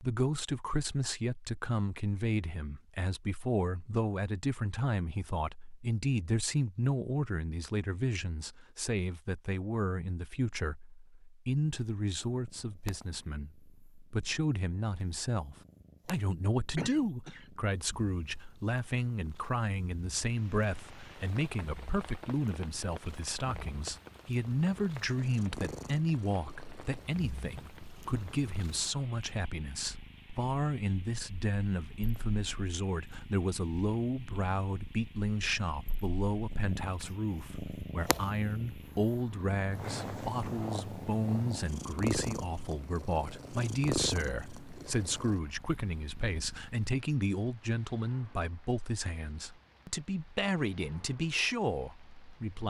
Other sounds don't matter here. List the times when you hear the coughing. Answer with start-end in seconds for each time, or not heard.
16.8-17.4.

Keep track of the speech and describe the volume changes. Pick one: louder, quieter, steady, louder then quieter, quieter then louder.
steady.